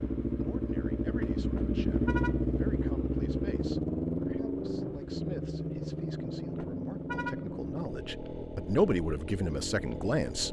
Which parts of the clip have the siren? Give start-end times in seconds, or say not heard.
not heard.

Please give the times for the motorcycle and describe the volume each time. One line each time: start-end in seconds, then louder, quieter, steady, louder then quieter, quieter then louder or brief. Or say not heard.
0.0-10.4 quieter.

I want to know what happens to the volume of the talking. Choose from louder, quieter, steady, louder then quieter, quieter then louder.
louder.